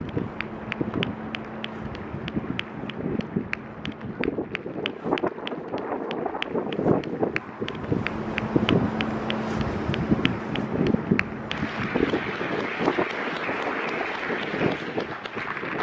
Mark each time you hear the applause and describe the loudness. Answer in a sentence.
The applause can be heard from 0.0 to 15.7 s, getting louder.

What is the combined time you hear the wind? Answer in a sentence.
The wind can be heard for 16 seconds in total.